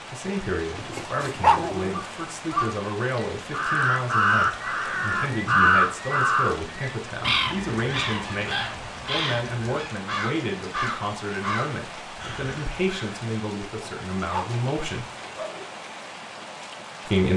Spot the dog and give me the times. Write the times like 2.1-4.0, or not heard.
0.8-2.0, 13.7-15.7.